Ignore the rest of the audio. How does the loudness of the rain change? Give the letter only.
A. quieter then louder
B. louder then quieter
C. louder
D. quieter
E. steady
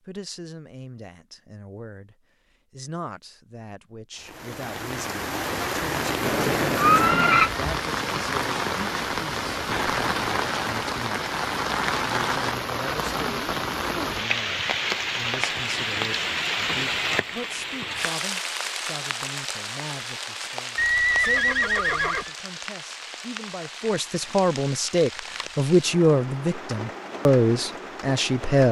D.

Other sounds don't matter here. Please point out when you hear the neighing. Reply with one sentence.
The neighing can be heard from 6.2 to 7.5 s and from 20.8 to 22.3 s.